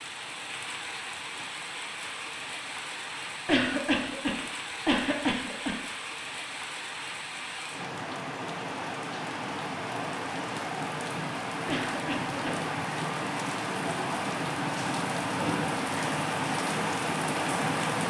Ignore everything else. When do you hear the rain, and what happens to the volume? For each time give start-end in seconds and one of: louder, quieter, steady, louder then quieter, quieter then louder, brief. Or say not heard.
0.0-18.0 louder.